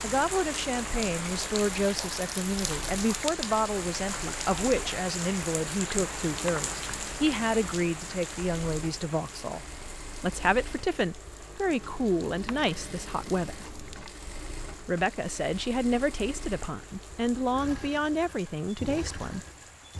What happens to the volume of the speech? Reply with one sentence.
The loudness of the speech stays about the same.